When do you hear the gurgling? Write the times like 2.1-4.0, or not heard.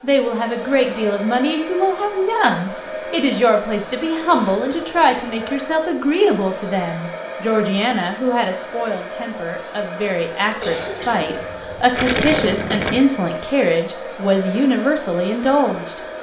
11.9-13.1.